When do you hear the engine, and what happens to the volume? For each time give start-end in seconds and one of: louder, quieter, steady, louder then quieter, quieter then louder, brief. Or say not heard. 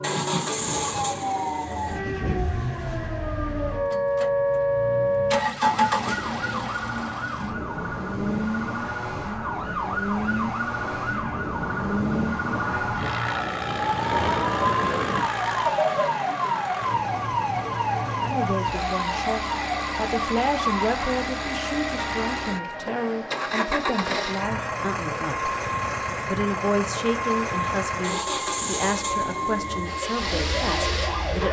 0.0-31.4 steady.